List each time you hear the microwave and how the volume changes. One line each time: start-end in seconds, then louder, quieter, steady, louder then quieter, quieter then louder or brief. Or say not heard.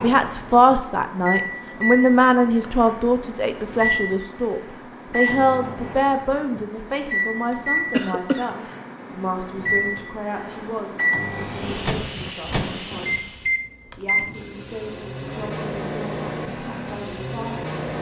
0.0-17.9 steady.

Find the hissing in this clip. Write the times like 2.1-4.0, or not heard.
11.1-13.6.